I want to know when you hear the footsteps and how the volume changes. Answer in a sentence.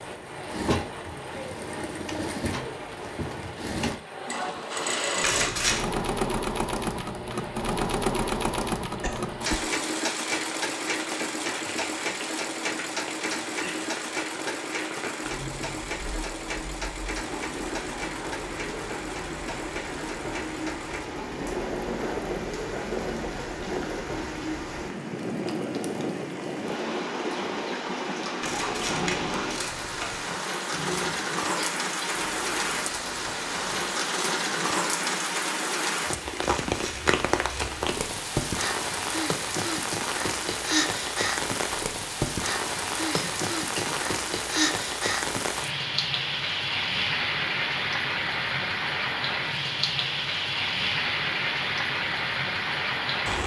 You can't hear the footsteps here.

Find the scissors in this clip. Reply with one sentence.
The scissors can be heard from 5.2 to 5.8 s, from 28.4 to 30.3 s and from 36.4 to 37.8 s.